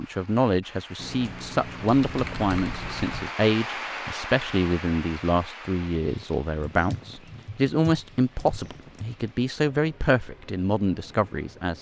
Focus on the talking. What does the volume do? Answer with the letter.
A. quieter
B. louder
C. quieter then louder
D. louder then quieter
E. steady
E.